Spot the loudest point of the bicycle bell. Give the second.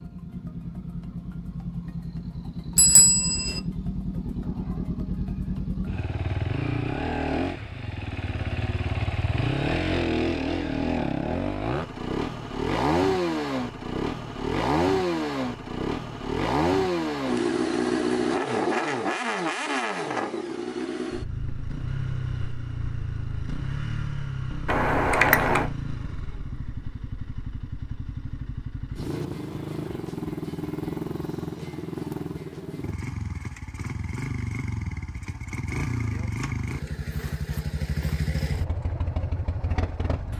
25 s.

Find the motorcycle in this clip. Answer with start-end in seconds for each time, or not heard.
0.0-40.3.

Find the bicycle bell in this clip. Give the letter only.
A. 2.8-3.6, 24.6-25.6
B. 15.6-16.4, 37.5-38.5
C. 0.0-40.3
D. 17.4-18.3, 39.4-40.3
A.